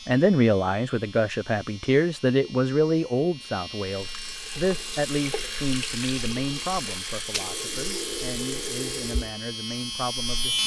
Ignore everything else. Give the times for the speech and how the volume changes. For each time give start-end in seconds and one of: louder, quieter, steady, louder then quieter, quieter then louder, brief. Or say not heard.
0.1-10.6 quieter.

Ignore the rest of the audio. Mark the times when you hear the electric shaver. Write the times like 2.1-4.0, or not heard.
0.0-10.6.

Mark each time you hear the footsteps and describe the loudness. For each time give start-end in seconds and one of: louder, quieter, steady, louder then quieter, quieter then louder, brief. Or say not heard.
not heard.